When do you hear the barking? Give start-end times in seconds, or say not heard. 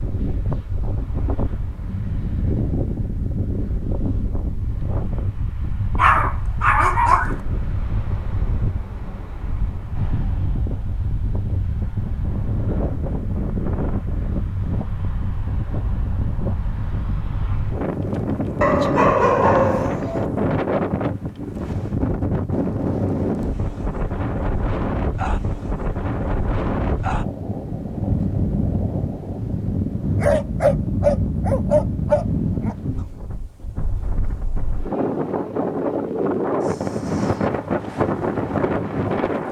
6.0-7.3, 18.6-20.2, 30.2-32.8.